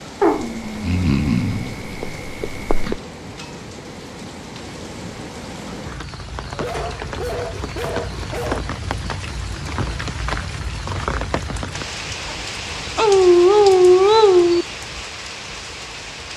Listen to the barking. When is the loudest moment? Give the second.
14 s.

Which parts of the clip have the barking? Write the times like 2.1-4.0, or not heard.
0.2-3.0, 6.5-8.6, 12.9-14.7.